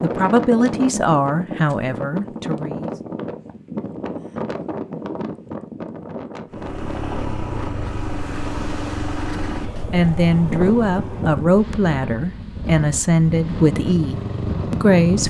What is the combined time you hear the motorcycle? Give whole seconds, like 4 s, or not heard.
9 s.